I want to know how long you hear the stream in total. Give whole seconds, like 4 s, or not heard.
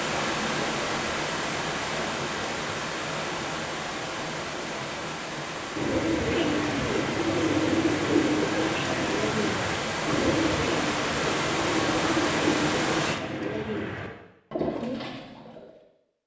13 s.